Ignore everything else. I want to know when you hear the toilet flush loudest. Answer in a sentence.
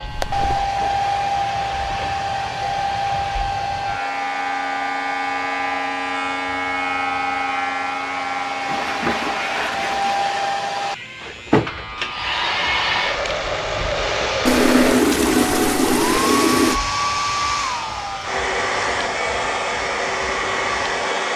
The loudest moment of the toilet flush is at 15 seconds.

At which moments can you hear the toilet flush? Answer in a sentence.
The toilet flush can be heard from 0.1 to 0.6 s, from 8.7 to 10.2 s and from 14.4 to 16.8 s.